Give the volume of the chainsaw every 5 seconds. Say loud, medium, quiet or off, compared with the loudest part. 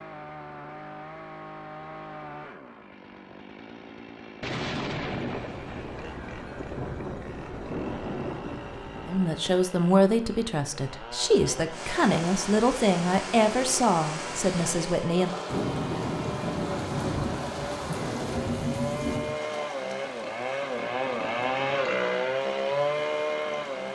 quiet, quiet, quiet, medium, loud.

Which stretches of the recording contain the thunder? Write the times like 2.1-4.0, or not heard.
4.4-9.3, 15.4-19.4.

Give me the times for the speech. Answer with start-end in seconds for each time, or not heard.
9.1-15.3.